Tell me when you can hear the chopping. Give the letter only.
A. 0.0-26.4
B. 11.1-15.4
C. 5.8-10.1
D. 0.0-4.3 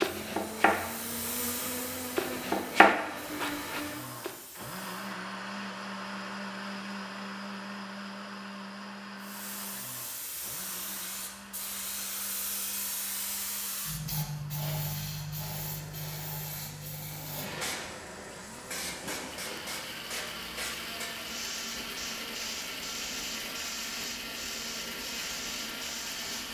D.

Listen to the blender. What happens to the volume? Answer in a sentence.
The volume of the blender goes down, then up.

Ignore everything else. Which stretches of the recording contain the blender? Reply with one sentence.
The blender can be heard from 0.0 to 26.4 s.